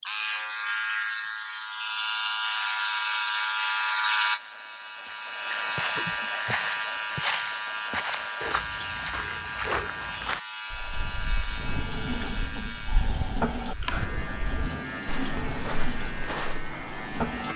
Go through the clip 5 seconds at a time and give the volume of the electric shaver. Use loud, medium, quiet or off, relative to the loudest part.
loud, loud, medium, medium.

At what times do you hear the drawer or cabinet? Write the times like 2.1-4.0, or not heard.
not heard.